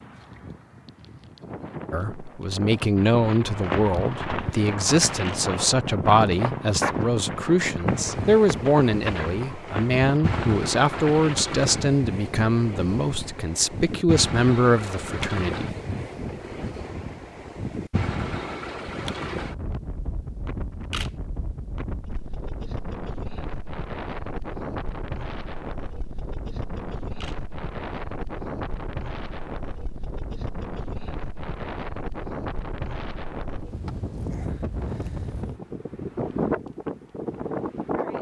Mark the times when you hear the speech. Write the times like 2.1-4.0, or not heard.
1.9-15.7.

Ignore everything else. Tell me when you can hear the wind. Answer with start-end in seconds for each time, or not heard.
0.0-38.1.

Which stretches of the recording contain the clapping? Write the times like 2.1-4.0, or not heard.
not heard.